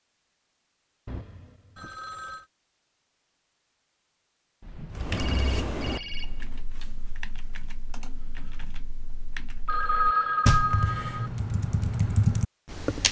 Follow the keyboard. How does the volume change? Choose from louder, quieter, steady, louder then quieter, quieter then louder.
quieter then louder.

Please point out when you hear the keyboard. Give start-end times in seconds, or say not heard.
4.9-13.0.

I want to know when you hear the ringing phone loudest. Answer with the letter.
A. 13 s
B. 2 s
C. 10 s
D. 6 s
C.